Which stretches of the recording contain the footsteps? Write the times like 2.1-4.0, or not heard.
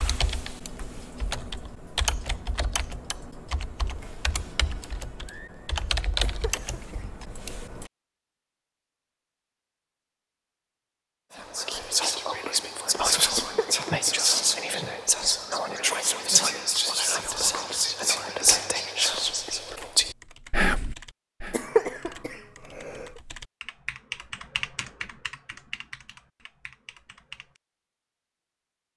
not heard.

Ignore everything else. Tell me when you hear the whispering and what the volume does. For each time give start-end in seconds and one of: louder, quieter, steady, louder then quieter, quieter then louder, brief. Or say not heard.
11.3-21.6 steady.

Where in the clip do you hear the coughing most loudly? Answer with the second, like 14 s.
22 s.